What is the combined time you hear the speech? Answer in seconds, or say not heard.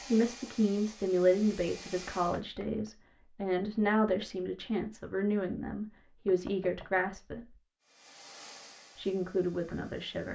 9 s.